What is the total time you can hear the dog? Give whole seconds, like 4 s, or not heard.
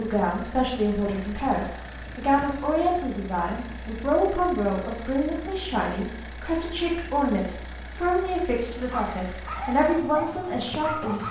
2 s.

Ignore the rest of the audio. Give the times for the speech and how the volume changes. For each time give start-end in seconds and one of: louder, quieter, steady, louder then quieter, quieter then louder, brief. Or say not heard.
0.0-11.2 steady.